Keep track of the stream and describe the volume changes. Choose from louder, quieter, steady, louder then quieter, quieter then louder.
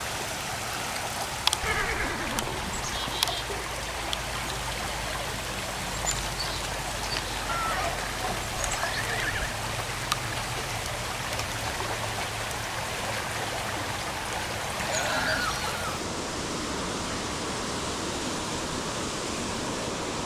steady.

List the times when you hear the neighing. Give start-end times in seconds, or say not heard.
1.6-3.0, 7.5-9.6, 14.8-15.8.